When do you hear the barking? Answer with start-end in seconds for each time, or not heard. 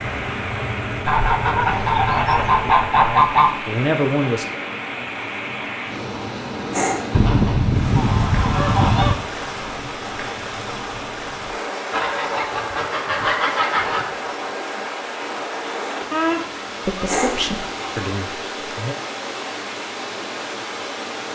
6.7-7.2, 17.1-17.5.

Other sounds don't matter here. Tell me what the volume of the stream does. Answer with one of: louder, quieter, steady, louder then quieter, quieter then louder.
steady.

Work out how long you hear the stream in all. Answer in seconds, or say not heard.
21 s.